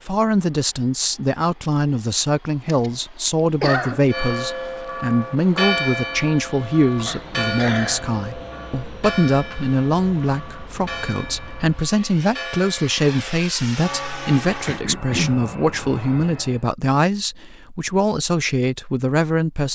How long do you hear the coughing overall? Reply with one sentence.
You can hear the coughing for 3 seconds altogether.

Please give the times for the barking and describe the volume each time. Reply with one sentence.
The barking can't be heard in this clip.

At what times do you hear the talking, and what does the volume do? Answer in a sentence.
The talking can be heard from 0.1 to 19.6 s, at a steady volume.